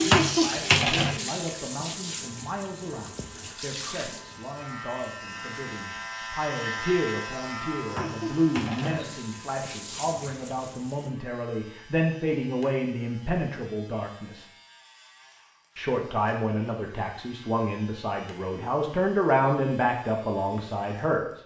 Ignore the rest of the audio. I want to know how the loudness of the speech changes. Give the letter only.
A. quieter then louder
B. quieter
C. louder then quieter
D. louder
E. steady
D.